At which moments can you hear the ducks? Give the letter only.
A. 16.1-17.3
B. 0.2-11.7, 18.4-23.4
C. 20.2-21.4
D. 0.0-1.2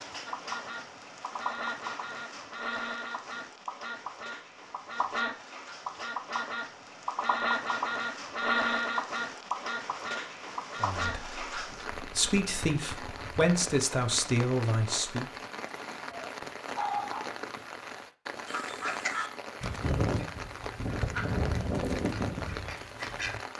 B.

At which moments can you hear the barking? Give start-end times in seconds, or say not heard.
16.1-17.3.